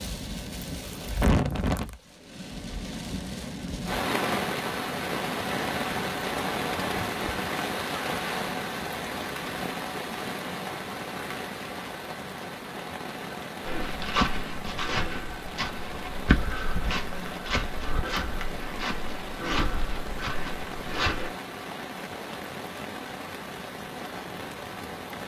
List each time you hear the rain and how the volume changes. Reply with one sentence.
You can hear the rain from 0.0 to 25.2 s, getting quieter.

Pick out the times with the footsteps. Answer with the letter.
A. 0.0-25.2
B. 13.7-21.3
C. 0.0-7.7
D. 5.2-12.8
B.